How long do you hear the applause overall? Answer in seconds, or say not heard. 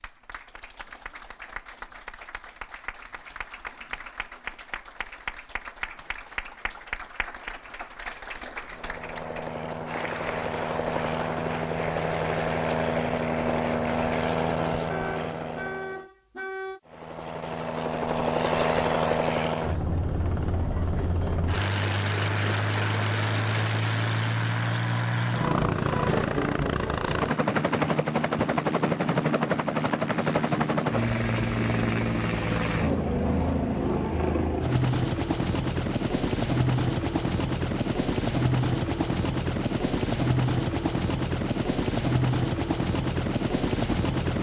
14 s.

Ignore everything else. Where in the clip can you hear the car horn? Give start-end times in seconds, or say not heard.
14.9-16.8.